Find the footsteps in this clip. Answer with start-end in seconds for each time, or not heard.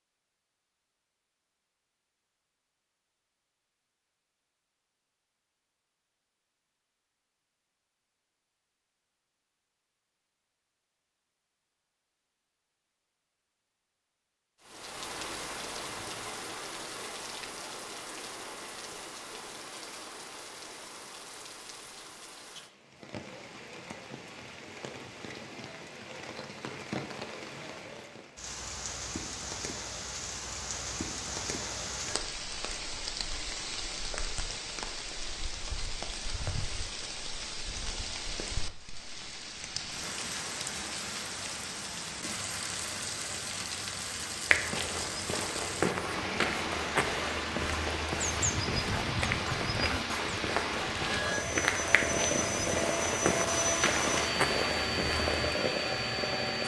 44.5-55.5.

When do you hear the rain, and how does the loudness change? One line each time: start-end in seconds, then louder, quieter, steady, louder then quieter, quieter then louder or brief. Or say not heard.
14.6-56.6 louder.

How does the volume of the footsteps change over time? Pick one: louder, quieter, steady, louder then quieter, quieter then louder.
steady.